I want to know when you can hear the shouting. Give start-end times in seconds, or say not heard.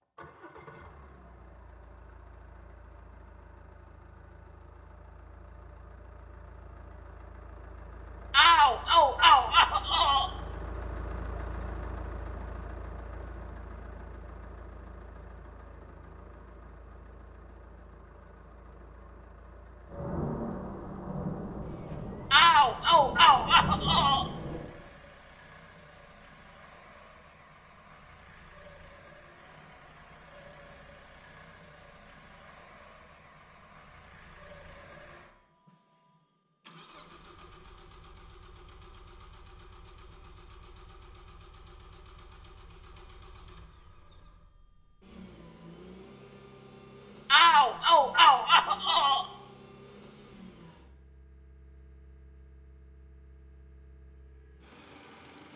8.3-10.3, 22.3-24.3, 47.3-49.3.